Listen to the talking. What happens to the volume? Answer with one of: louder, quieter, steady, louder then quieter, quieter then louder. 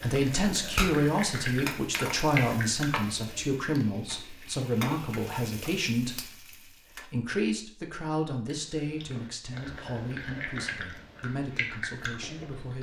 quieter.